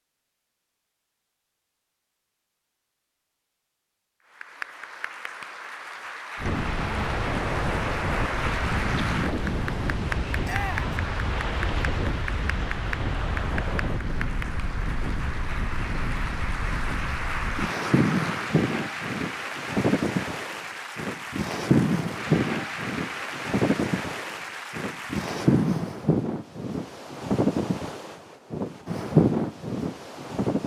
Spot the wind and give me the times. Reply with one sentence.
The wind can be heard from 6.3 to 30.6 s.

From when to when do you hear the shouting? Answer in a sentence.
You can hear the shouting from 10.4 to 10.9 s.